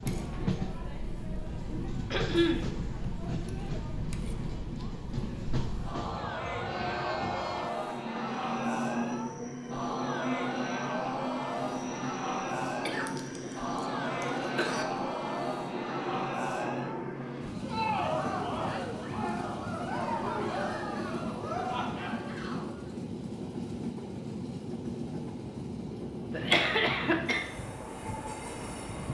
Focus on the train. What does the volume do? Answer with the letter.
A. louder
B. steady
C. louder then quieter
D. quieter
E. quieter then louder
B.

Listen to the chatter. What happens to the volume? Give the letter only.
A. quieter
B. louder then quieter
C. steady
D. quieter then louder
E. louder
E.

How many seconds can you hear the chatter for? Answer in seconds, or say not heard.
23 s.